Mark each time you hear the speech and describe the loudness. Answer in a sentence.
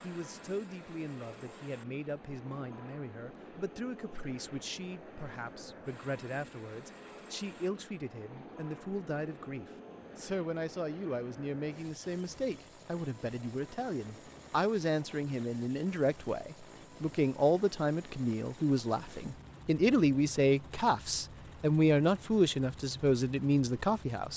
You can hear the speech from 0.0 to 24.3 s, getting louder.